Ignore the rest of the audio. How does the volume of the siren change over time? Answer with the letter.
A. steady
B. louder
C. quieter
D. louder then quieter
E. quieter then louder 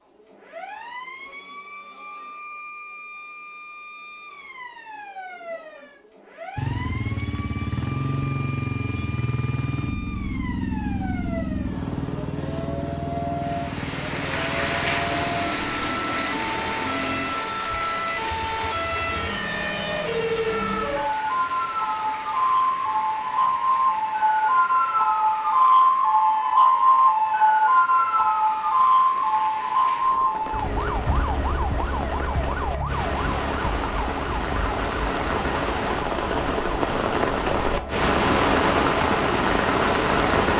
D.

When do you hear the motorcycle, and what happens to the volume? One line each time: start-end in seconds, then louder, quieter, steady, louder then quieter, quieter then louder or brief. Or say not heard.
6.5-19.3 quieter.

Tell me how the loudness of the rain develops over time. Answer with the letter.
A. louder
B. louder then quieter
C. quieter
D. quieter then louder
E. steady
D.